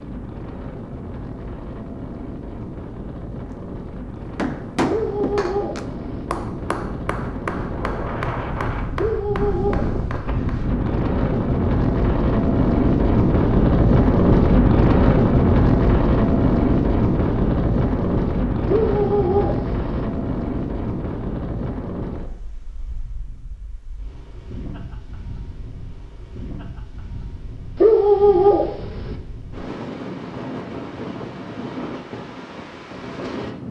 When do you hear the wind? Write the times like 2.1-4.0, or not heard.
0.0-33.6.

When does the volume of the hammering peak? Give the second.
5 s.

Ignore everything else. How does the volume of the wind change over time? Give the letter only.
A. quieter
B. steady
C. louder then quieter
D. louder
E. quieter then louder
C.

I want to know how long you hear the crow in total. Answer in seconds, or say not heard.
not heard.